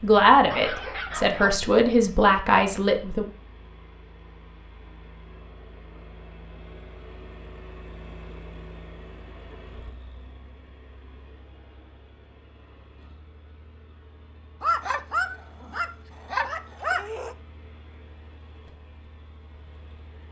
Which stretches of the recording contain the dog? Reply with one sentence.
You can hear the dog from 0.5 to 1.6 s and from 14.6 to 17.4 s.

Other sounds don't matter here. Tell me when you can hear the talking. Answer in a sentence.
The talking can be heard from 0.0 to 3.2 s.